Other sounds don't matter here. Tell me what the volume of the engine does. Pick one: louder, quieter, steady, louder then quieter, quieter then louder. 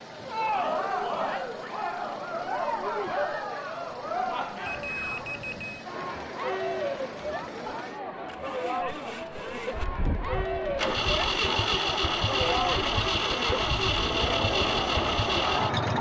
louder.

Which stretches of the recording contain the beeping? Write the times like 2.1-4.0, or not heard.
4.7-5.8.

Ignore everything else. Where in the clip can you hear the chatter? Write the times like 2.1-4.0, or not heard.
0.1-15.9.